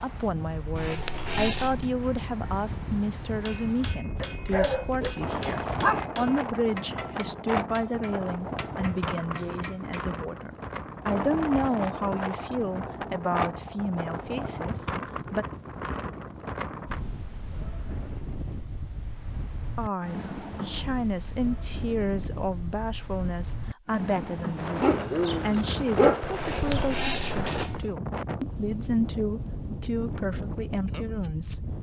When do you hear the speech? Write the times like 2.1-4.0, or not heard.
0.0-15.4, 19.8-31.6.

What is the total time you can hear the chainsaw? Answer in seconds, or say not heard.
not heard.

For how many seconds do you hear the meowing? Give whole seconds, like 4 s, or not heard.
3 s.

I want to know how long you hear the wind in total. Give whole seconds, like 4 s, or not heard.
32 s.